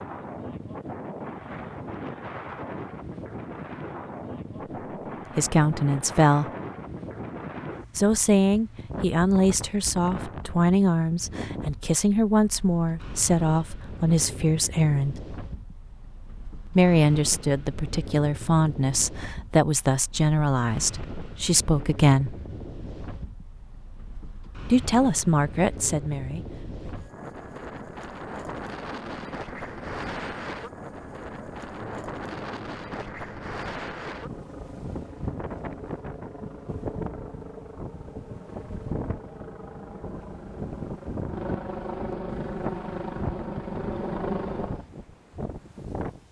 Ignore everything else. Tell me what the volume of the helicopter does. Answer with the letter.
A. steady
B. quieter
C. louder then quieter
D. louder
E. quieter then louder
D.